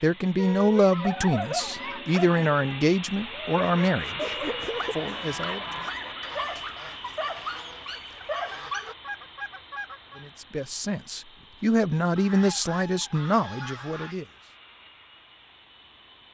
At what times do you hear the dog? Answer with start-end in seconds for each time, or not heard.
0.3-8.9.